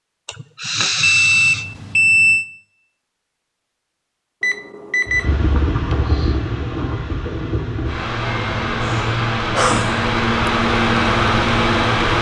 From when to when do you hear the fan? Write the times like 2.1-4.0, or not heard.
5.0-12.1.